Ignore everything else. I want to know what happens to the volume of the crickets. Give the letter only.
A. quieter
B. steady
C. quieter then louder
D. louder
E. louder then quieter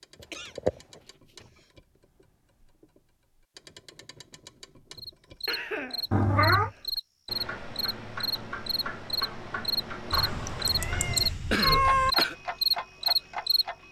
D.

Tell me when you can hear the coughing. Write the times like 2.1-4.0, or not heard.
0.2-1.7, 5.5-6.8, 11.5-12.3.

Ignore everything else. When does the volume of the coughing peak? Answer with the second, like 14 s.
12 s.